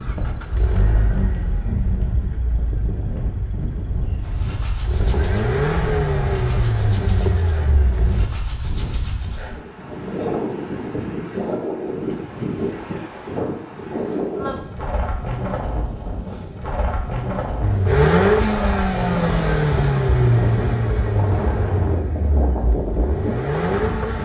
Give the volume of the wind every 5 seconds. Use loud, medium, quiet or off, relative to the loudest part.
medium, medium, loud, loud, loud.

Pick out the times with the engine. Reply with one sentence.
You can hear the engine from 0.0 to 8.3 s and from 17.6 to 24.1 s.